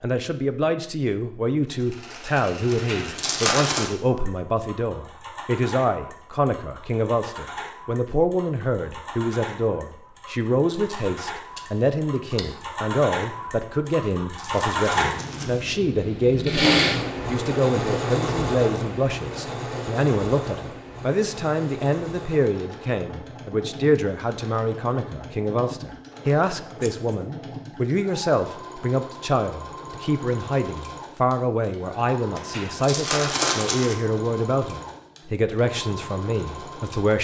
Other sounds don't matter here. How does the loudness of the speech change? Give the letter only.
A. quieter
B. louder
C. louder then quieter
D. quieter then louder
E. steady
E.